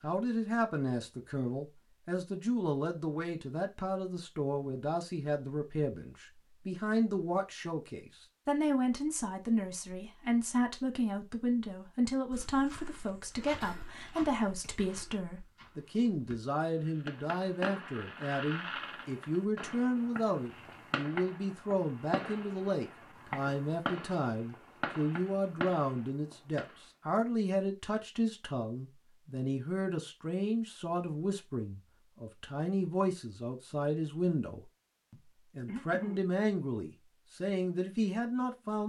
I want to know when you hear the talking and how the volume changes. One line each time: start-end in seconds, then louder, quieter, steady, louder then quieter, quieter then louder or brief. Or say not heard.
0.0-38.8 steady.